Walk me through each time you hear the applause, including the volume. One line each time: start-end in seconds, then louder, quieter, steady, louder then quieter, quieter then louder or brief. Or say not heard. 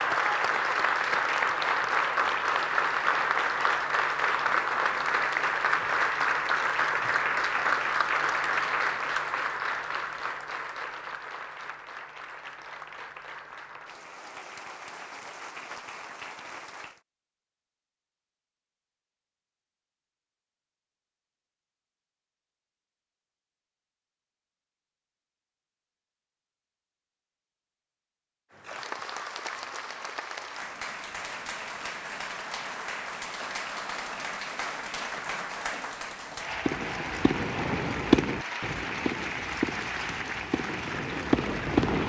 0.0-17.0 quieter
28.5-42.0 steady.